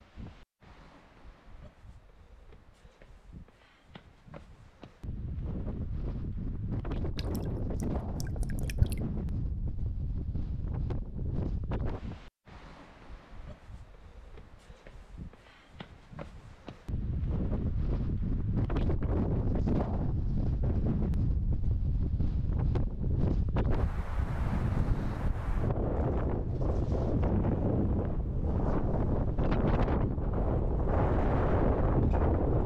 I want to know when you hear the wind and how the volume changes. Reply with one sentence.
The wind can be heard from 0.0 to 32.6 s, getting louder.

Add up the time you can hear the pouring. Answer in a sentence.
You can hear the pouring for 2 seconds altogether.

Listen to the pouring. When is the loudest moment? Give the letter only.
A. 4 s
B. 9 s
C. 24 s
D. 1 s
B.